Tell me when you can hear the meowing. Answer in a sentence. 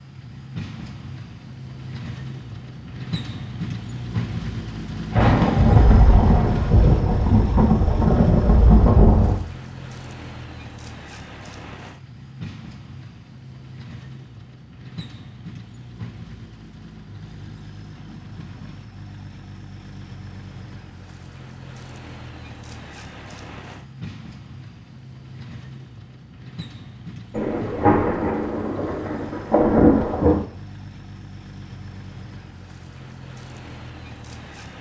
The meowing can't be heard in this clip.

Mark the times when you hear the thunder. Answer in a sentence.
The thunder can be heard from 5.2 to 9.4 s and from 27.4 to 30.4 s.